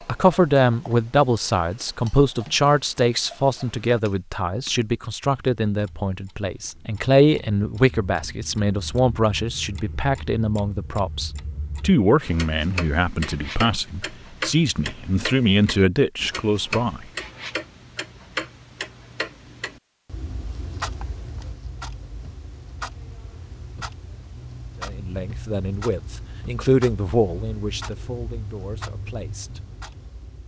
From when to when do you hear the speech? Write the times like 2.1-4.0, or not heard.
0.1-17.1, 24.8-29.6.